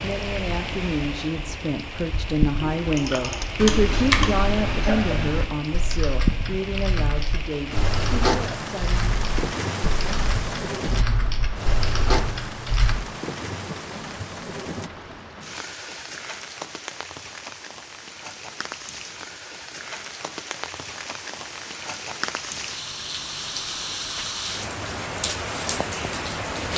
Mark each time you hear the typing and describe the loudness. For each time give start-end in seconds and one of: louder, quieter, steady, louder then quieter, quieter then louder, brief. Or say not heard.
2.6-12.9 quieter.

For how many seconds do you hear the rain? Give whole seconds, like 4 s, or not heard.
27 s.